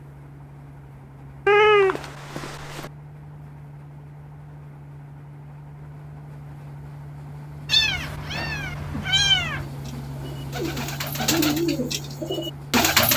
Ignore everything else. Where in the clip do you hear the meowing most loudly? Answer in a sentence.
The volume of the meowing peaks at 2 seconds.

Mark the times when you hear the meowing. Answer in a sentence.
You can hear the meowing from 1.4 to 2.9 s and from 7.7 to 9.7 s.